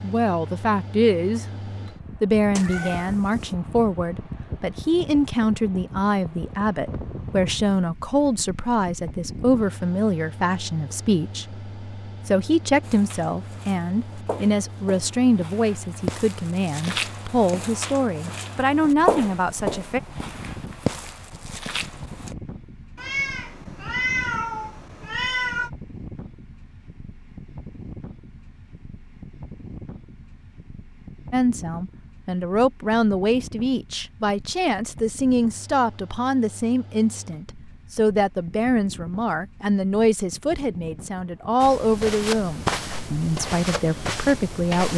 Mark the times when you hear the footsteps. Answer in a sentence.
The footsteps can be heard from 12.8 to 22.4 s and from 41.6 to 44.9 s.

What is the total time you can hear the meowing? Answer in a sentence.
The meowing can be heard for 4 seconds in total.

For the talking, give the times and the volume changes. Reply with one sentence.
The talking can be heard briefly from 0.0 to 1.4 s; from 2.2 to 20.0 s, at a steady volume; and from 31.3 to 44.9 s, at a steady volume.